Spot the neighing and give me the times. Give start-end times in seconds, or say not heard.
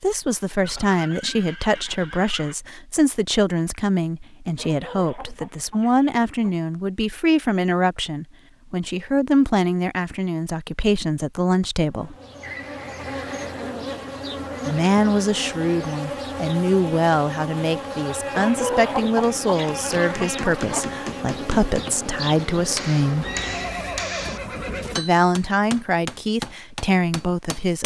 0.6-2.5, 12.4-13.8, 23.2-25.1.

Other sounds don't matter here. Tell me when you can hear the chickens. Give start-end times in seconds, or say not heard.
4.5-6.5, 18.3-20.9.